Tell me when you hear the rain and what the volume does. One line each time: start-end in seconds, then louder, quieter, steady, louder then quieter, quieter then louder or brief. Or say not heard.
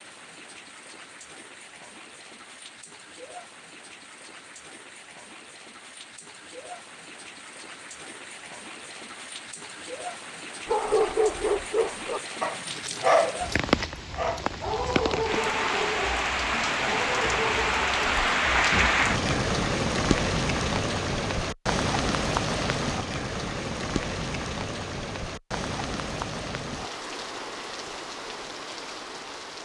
0.0-29.5 louder then quieter.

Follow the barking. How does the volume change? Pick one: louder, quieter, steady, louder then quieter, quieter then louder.
quieter.